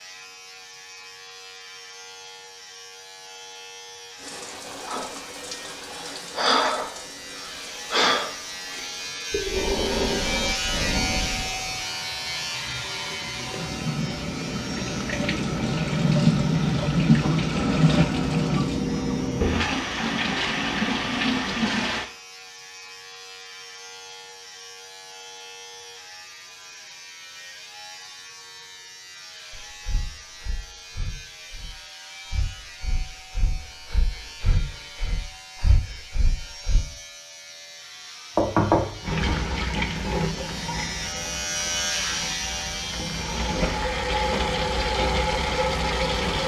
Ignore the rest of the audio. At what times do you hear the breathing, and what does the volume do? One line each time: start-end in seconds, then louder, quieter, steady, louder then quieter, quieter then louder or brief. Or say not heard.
4.8-11.6 louder then quieter
29.5-36.9 louder.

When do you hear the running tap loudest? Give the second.
17 s.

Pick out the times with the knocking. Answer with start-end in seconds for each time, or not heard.
38.4-39.5.